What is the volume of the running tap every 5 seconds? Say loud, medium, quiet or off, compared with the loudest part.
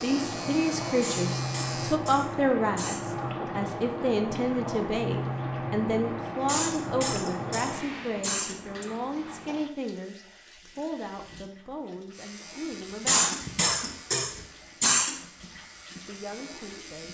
loud, loud, quiet, quiet.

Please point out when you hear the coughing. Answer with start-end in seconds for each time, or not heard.
1.0-3.0, 6.5-8.8, 13.1-15.2.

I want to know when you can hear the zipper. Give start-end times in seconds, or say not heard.
not heard.